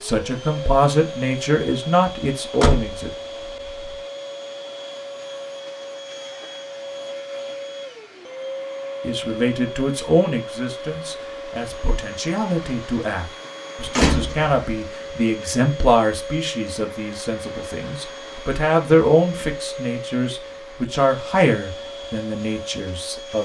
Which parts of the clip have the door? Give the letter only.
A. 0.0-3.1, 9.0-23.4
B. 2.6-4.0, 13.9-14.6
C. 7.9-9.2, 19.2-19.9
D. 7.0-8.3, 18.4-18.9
B.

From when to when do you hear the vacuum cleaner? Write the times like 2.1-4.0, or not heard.
0.0-23.4.